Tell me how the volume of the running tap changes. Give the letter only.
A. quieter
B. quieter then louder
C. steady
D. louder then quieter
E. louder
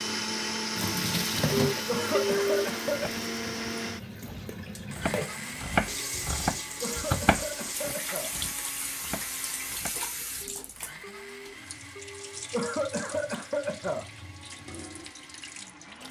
A.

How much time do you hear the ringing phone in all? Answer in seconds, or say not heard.
3 s.